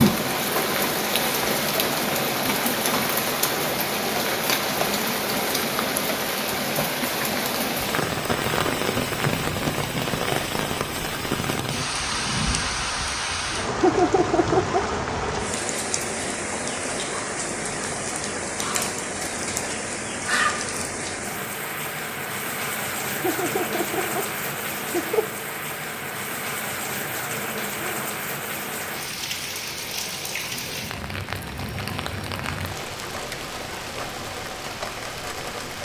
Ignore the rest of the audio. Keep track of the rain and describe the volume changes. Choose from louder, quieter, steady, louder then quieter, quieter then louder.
quieter.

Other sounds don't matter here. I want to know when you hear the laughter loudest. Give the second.
14 s.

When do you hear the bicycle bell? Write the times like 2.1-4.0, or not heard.
not heard.